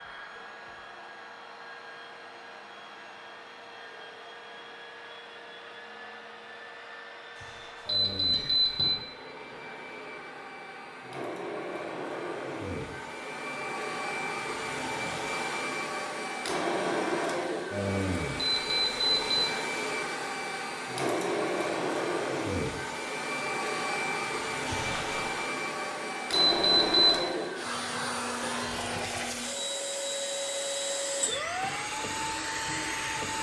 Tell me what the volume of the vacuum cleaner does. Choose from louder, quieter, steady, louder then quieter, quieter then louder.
louder.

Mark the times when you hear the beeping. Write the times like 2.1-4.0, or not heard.
7.8-9.0, 18.4-19.4, 26.3-27.2.